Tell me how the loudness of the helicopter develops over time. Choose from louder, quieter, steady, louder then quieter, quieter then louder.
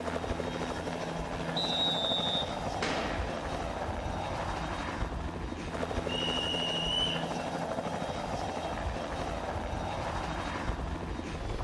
steady.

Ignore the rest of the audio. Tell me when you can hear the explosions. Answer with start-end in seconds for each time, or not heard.
2.8-3.5.